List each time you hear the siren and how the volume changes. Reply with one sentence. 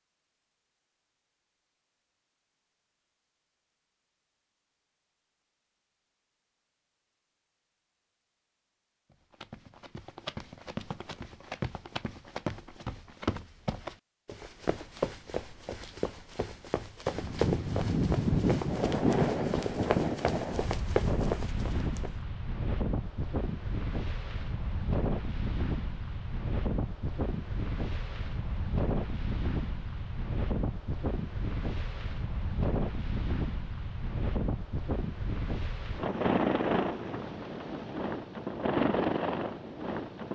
The siren can't be heard in this clip.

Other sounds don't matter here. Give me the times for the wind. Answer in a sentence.
The wind can be heard from 17.1 to 40.3 s.